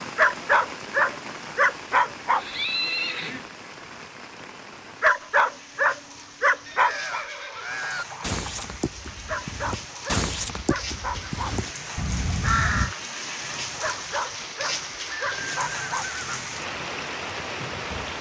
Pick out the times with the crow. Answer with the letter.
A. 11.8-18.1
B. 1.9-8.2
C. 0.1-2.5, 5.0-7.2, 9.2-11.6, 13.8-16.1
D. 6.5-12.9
D.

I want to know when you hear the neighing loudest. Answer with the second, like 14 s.
3 s.